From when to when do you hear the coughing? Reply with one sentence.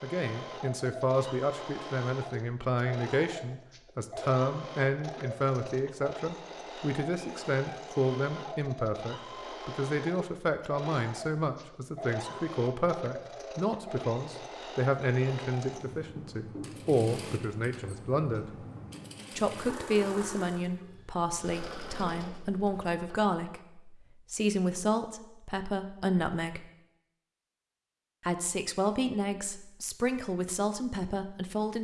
You can't hear the coughing here.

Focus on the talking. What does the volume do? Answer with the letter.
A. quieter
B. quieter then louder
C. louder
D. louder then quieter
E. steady
E.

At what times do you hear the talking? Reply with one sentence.
The talking can be heard from 0.0 to 18.6 s, from 19.4 to 26.7 s and from 28.2 to 31.7 s.